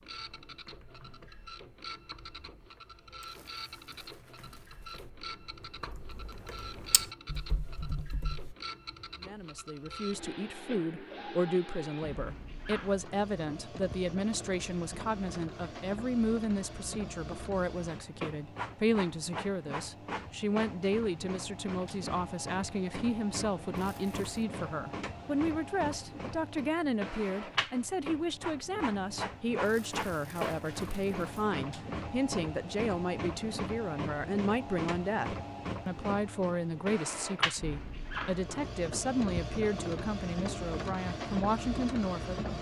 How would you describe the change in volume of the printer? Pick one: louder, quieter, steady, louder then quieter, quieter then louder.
louder.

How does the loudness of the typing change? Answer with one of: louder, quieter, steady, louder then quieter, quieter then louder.
louder.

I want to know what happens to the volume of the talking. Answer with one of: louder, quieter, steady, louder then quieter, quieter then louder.
steady.